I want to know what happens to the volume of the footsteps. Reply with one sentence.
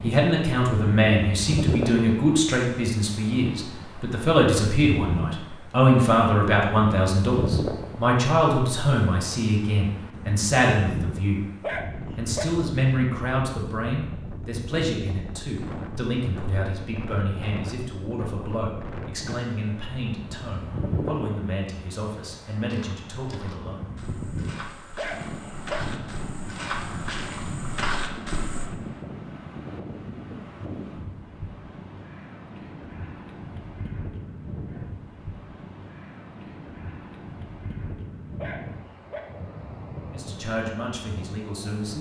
The volume of the footsteps goes up.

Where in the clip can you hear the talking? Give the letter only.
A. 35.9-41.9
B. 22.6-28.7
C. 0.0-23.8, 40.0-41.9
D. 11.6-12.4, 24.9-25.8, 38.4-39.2
C.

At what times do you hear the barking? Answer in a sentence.
You can hear the barking from 11.6 to 12.4 s, from 24.9 to 25.8 s and from 38.4 to 39.2 s.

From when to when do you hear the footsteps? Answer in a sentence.
You can hear the footsteps from 22.6 to 28.7 s.